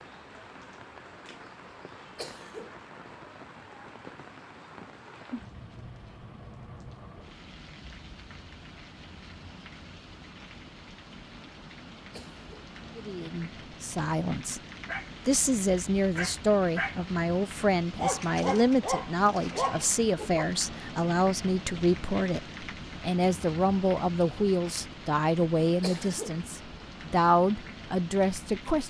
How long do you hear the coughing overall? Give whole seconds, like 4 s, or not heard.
2 s.